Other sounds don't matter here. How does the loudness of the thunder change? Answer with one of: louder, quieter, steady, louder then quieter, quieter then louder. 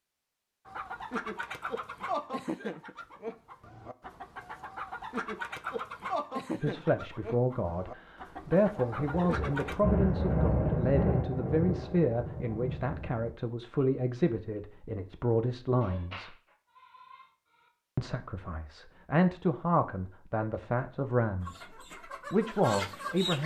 louder then quieter.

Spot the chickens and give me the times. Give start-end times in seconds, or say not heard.
0.7-9.8, 21.4-23.4.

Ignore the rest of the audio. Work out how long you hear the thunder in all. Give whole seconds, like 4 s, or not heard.
5 s.